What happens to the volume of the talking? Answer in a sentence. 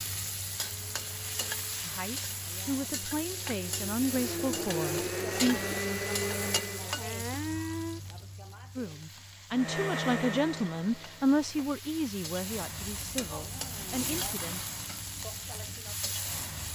The loudness of the talking goes up, then down.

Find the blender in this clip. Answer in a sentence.
You can hear the blender from 0.0 to 8.1 s and from 9.5 to 11.7 s.